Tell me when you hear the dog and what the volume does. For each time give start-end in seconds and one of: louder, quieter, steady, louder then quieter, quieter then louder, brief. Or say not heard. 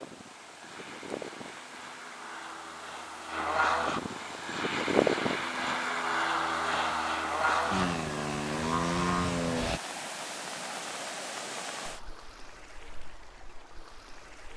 not heard.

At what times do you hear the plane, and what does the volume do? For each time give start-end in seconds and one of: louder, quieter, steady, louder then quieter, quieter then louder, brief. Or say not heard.
0.0-9.8 louder.